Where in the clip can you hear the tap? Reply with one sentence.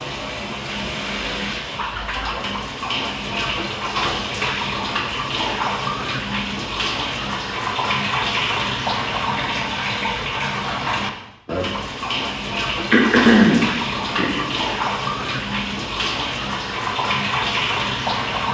The tap can be heard from 0.0 to 18.4 s.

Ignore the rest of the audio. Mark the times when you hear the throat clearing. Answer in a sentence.
You can hear the throat clearing from 12.9 to 14.4 s.